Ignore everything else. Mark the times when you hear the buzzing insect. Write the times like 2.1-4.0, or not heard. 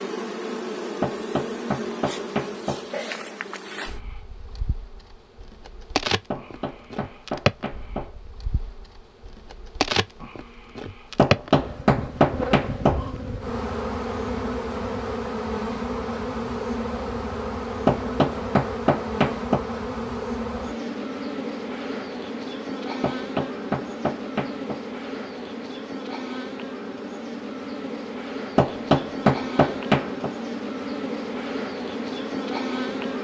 0.0-33.1.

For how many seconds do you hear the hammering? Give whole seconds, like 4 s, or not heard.
11 s.